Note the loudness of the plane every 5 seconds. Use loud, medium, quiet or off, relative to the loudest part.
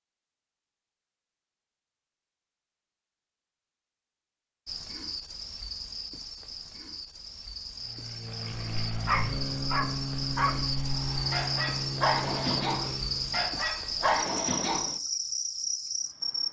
off, loud, loud, off.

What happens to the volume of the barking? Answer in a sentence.
The volume of the barking goes up.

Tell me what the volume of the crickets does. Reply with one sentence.
The loudness of the crickets goes up.